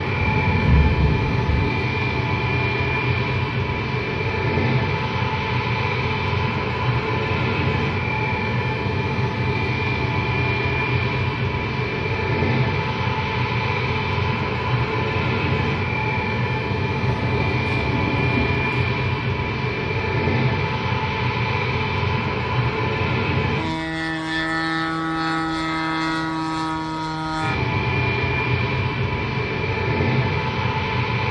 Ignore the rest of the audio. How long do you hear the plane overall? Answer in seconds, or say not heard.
31 s.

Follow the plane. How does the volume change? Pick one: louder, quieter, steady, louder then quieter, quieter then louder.
steady.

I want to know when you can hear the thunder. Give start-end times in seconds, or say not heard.
0.1-1.7, 17.0-18.9.